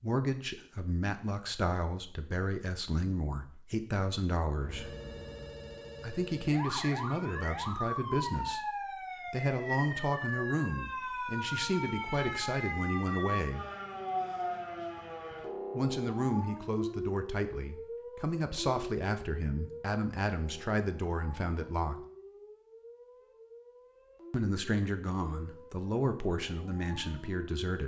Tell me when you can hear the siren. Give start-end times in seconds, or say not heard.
6.5-27.7.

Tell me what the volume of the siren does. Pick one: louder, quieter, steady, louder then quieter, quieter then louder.
quieter.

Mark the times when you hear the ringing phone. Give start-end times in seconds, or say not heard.
4.6-6.6.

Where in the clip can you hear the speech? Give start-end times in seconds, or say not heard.
0.0-4.9, 6.0-8.6, 9.3-13.7, 15.8-21.9, 24.3-27.8.